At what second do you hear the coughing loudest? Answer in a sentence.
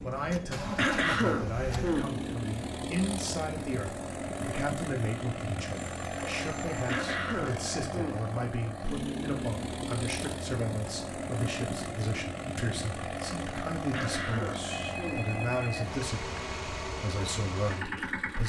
The loudest moment of the coughing is at 1 second.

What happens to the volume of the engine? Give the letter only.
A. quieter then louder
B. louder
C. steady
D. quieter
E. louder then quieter
C.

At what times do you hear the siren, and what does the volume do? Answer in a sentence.
The siren can't be heard in this clip.